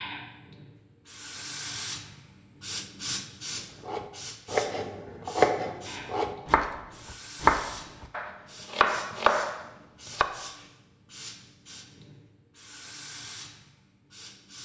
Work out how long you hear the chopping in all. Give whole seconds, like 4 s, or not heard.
7 s.